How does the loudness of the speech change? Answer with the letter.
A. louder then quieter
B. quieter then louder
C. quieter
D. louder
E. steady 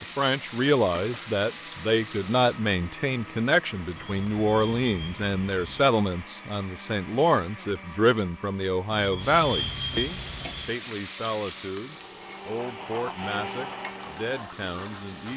C.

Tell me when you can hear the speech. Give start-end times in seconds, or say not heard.
0.0-15.3.